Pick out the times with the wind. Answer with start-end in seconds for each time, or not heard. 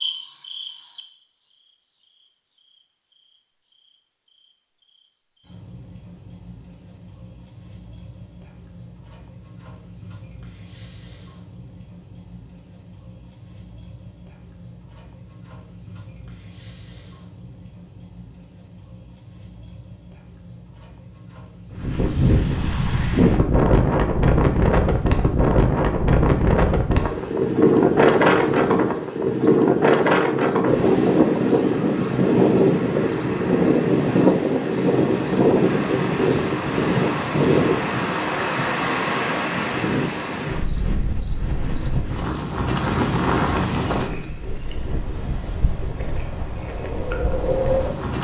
21.7-48.2.